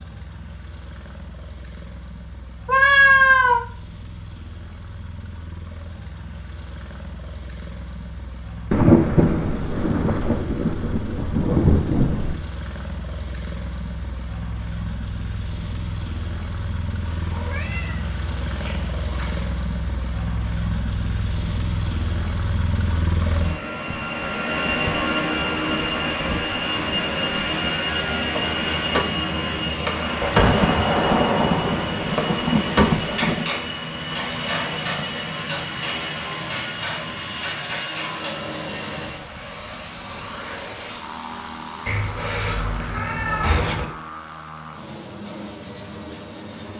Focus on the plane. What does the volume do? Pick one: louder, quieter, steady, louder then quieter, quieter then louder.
louder then quieter.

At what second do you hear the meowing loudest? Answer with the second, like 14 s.
3 s.